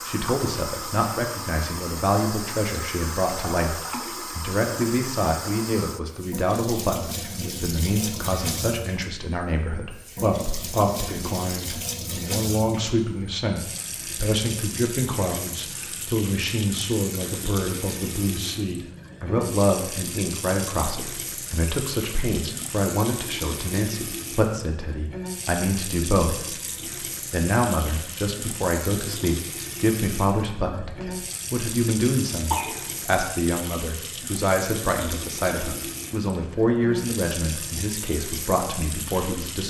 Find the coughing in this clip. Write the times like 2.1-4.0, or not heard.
32.5-33.0.